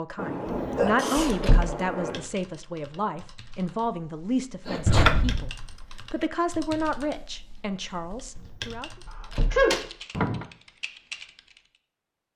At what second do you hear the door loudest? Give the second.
5 s.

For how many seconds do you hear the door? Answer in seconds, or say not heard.
5 s.